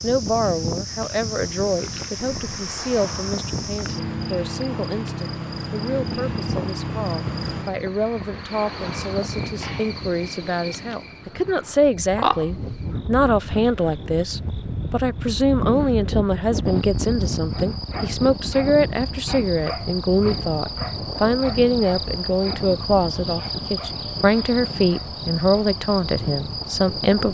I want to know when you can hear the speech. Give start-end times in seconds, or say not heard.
0.0-27.2.